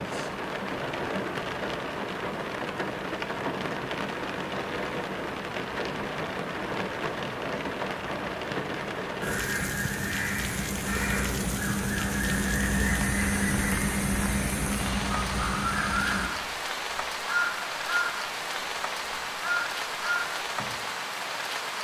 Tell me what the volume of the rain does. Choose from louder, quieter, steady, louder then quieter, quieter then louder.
steady.